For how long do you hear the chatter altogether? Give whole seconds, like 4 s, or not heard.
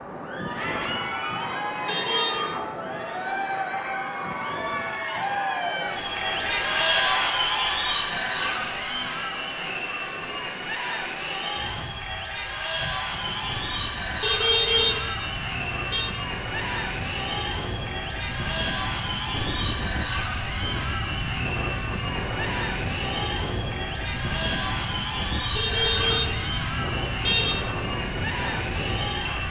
29 s.